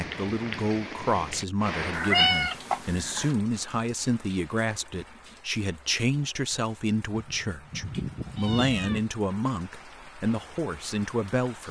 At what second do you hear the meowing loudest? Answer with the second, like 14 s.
2 s.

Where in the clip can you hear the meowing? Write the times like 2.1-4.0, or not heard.
1.9-3.4, 7.1-9.0.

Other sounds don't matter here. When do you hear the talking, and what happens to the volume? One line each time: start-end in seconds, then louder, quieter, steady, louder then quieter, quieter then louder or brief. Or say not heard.
0.0-11.6 steady.